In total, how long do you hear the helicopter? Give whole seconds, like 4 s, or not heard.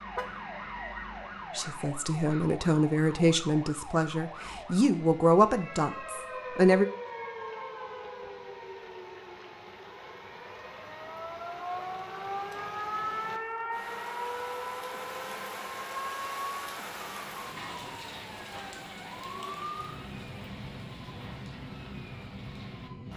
not heard.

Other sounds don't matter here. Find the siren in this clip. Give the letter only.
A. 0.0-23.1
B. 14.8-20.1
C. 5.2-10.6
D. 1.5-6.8
A.